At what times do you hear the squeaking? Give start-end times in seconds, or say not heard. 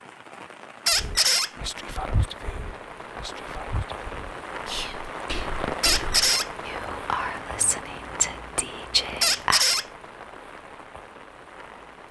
0.8-1.5, 5.8-6.5, 9.2-9.8.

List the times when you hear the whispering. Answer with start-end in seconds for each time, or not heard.
0.9-9.7.